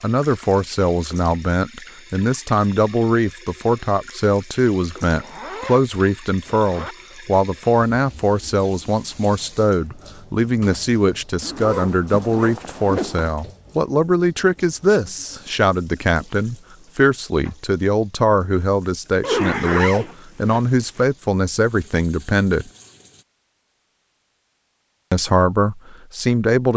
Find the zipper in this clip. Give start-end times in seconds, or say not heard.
5.0-7.0, 11.4-13.3, 19.2-21.1.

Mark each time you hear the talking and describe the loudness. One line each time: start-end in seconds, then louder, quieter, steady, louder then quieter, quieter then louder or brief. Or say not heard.
0.0-22.7 steady
25.1-26.7 brief.